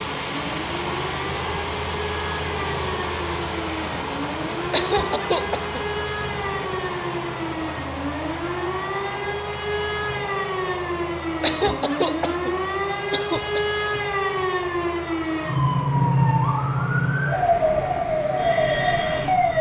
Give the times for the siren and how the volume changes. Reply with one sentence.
You can hear the siren from 0.1 to 19.5 s, getting louder.